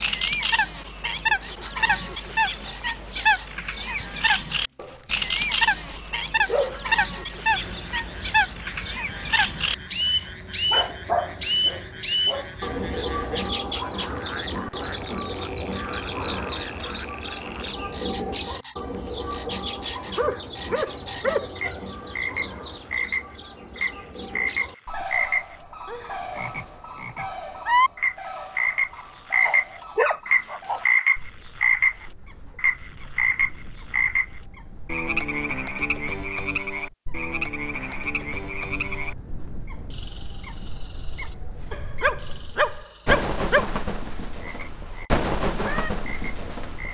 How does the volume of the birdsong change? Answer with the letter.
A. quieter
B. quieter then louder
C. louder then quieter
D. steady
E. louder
B.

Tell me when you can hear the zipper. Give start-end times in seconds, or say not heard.
not heard.